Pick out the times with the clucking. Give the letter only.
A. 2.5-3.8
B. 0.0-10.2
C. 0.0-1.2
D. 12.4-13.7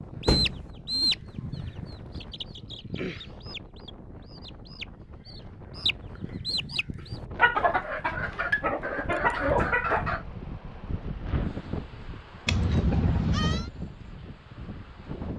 B.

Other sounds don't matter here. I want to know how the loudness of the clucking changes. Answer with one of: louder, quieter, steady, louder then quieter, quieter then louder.
quieter then louder.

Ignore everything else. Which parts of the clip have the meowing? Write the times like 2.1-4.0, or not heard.
12.4-13.7.